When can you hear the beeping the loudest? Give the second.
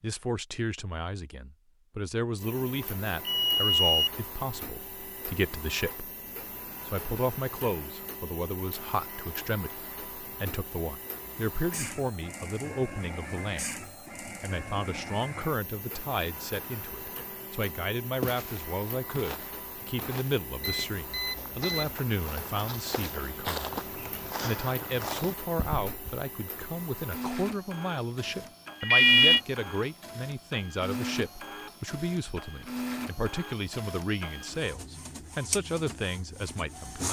29 s.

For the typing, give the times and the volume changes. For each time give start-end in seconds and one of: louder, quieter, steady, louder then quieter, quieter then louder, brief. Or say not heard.
not heard.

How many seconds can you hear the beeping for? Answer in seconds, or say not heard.
3 s.